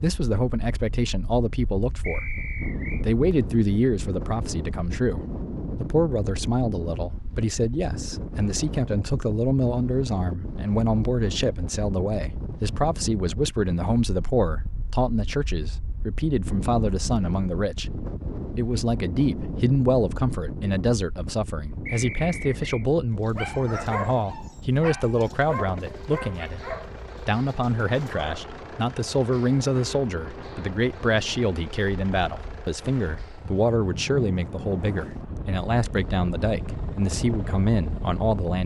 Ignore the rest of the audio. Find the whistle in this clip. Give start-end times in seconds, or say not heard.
2.0-3.0, 21.9-22.9.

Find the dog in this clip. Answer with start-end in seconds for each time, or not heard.
23.2-28.5.